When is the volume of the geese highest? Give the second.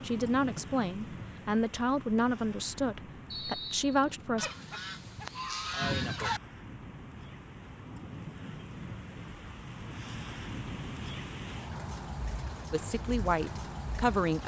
6 s.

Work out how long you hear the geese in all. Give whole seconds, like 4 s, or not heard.
2 s.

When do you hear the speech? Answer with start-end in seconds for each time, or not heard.
0.0-4.5, 12.7-14.4.